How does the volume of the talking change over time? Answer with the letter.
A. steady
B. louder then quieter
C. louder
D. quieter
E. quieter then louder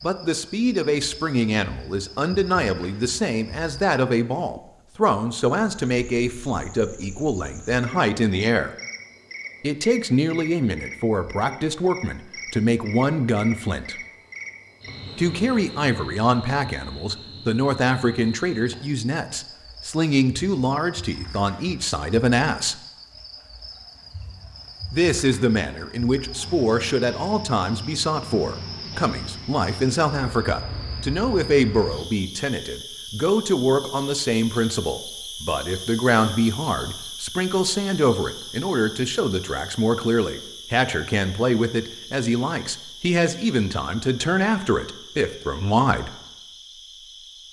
A.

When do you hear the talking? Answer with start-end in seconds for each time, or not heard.
0.0-8.7, 9.6-13.9, 15.2-22.8, 24.9-46.1.